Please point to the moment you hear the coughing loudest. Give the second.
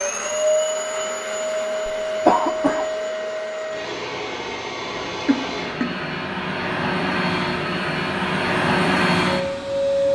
2 s.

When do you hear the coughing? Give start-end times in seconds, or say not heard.
1.9-2.9, 5.2-5.9.